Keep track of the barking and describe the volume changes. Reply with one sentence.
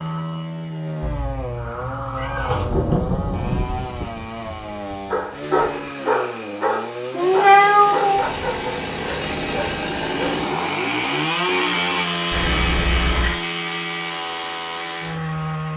The loudness of the barking goes down.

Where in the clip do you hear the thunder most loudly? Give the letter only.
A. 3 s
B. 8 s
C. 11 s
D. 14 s
A.